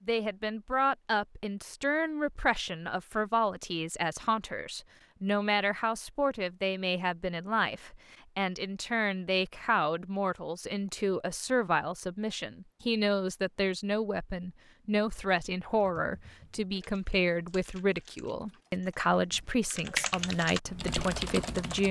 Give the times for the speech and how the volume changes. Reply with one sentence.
You can hear the speech from 0.1 to 21.8 s, at a steady volume.